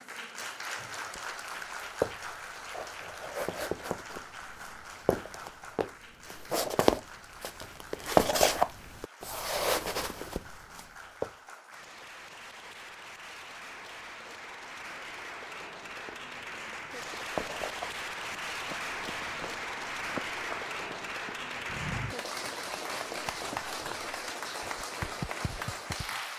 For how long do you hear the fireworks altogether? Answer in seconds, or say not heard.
not heard.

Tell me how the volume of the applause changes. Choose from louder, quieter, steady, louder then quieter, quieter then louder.
quieter then louder.